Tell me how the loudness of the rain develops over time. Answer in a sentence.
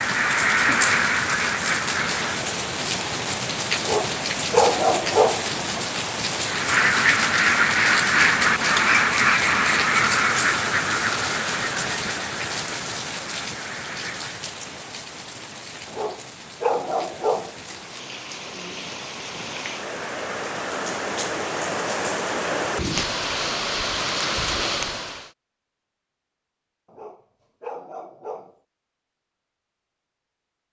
The loudness of the rain goes down, then up.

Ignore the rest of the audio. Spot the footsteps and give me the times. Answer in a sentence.
You can't hear the footsteps here.